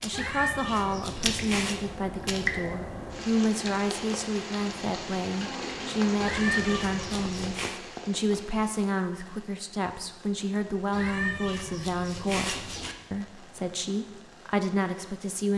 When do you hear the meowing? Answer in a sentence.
The meowing can be heard from 0.1 to 1.8 s, from 6.2 to 7.8 s and from 10.9 to 12.9 s.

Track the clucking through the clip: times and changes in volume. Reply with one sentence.
The clucking can't be heard in this clip.